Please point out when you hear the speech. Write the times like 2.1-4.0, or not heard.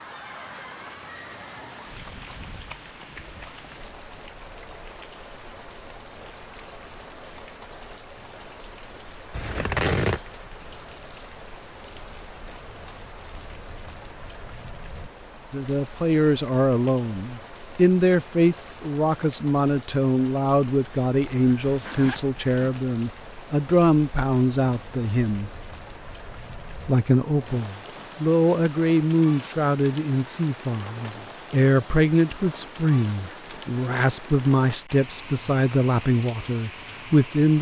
15.5-25.5, 26.8-37.5.